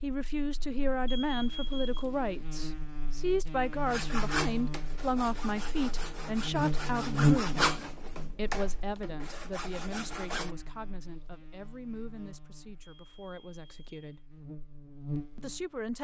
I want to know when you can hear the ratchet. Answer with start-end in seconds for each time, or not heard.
not heard.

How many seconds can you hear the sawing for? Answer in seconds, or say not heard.
7 s.